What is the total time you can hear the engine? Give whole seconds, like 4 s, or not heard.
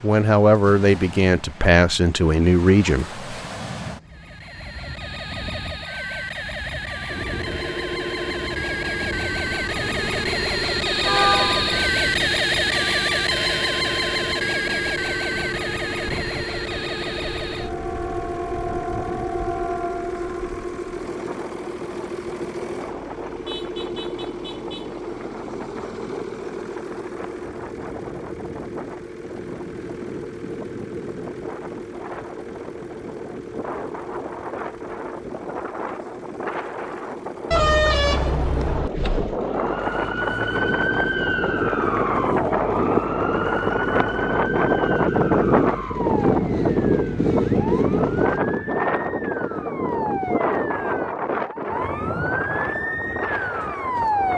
41 s.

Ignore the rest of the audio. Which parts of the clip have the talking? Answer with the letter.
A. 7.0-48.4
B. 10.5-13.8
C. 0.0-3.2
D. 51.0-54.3
C.